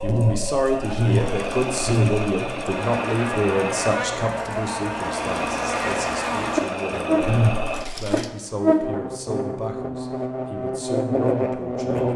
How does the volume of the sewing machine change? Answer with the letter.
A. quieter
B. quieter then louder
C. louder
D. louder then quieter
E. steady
E.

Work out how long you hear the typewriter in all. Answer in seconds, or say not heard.
not heard.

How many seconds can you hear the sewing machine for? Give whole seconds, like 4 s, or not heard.
8 s.